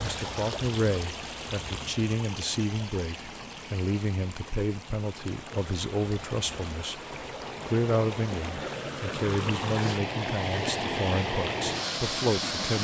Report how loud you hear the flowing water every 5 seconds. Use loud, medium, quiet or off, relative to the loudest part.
medium, medium, loud.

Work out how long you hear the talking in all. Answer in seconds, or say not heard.
12 s.